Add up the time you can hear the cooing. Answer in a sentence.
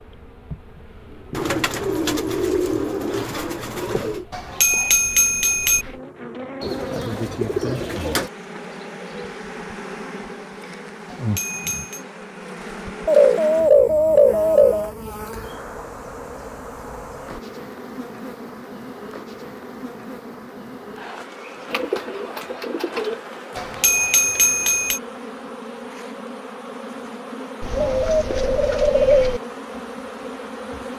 The cooing can be heard for 10 seconds in total.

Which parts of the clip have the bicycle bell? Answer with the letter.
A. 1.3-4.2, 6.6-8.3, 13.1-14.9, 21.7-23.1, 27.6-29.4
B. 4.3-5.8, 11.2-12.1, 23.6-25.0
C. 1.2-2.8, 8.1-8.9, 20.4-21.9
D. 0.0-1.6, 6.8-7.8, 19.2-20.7
B.